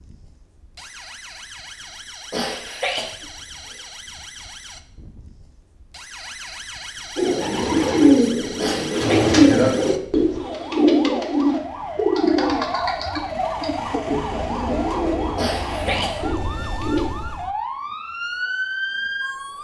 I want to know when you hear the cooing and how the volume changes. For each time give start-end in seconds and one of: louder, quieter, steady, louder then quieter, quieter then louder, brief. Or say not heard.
7.2-17.1 quieter.